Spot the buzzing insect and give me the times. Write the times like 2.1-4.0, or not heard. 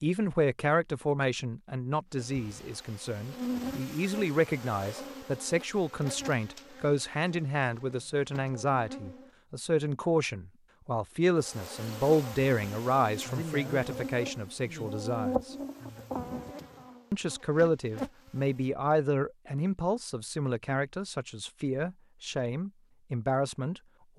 2.1-9.3, 11.4-18.5.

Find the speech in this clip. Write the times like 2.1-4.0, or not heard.
0.0-15.6, 17.1-24.1.